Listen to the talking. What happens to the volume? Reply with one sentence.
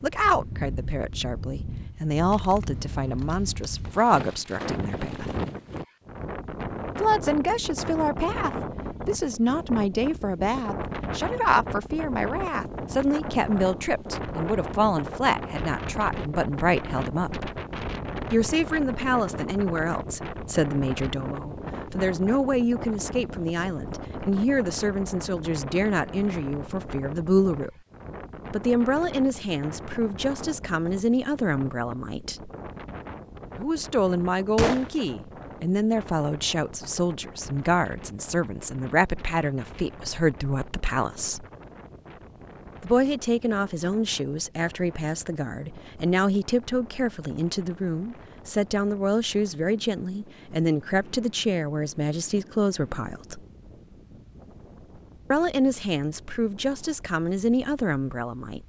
The loudness of the talking stays about the same.